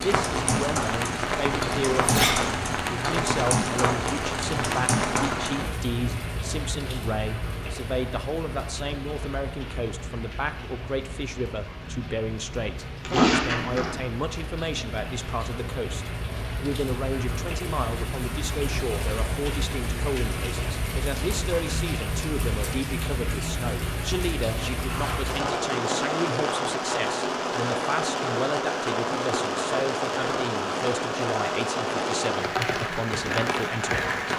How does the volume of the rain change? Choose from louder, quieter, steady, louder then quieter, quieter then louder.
quieter then louder.